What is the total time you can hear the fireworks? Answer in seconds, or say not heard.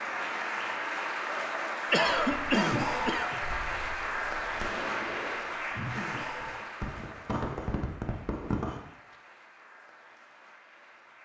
7 s.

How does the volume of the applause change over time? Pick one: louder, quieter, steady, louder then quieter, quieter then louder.
quieter.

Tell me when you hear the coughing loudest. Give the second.
2 s.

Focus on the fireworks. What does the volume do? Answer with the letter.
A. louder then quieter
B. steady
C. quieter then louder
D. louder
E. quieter
C.